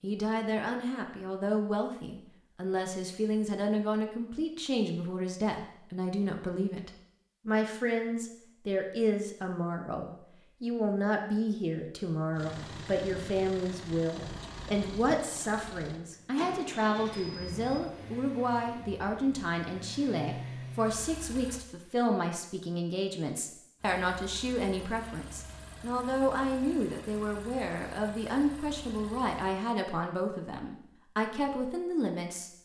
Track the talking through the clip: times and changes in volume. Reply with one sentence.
You can hear the talking from 0.0 to 32.6 s, at a steady volume.